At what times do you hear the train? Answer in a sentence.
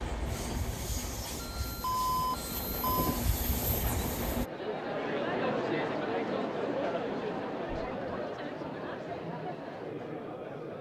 The train can be heard from 0.0 to 4.5 s.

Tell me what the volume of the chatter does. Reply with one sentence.
The loudness of the chatter goes down.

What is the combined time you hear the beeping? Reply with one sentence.
The beeping can be heard for 2 seconds in total.